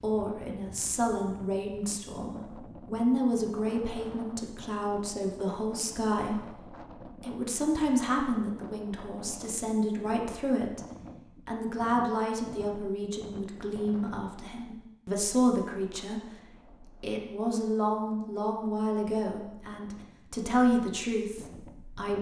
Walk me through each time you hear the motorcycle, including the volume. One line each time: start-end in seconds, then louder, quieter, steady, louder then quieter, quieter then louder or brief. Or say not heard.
not heard.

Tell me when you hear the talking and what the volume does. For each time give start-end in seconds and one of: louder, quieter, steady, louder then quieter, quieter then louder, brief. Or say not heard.
0.0-22.1 steady.